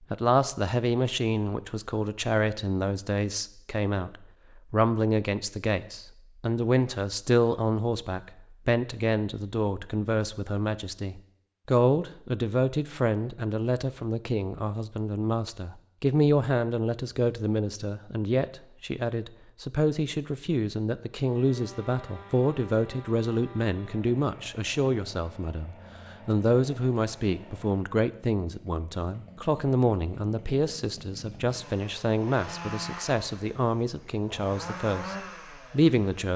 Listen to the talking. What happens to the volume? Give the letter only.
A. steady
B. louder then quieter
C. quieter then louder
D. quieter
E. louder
A.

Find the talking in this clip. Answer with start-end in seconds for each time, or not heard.
0.1-36.3.